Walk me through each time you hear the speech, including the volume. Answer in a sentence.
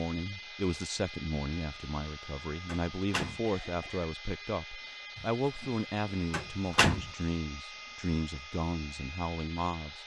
The speech can be heard from 0.0 to 10.0 s, at a steady volume.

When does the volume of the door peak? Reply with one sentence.
The loudest moment of the door is at 7 seconds.